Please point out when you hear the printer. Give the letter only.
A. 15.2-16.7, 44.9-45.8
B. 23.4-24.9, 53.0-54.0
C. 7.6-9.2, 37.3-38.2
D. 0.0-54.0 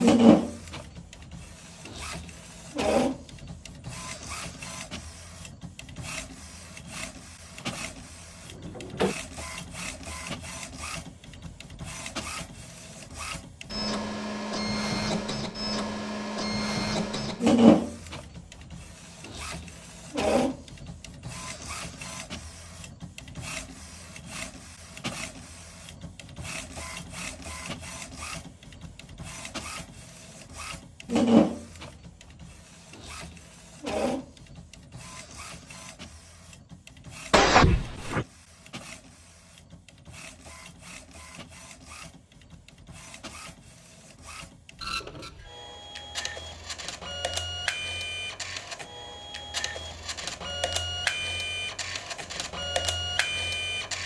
D.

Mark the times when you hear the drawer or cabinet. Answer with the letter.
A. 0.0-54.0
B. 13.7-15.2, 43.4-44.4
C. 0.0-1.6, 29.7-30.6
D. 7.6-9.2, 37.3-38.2
D.